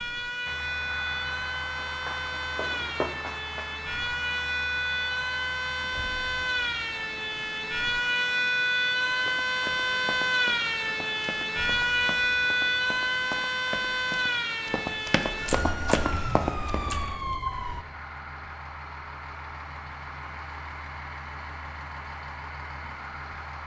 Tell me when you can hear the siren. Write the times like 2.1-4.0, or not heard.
0.0-17.9.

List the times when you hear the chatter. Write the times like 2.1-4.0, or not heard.
not heard.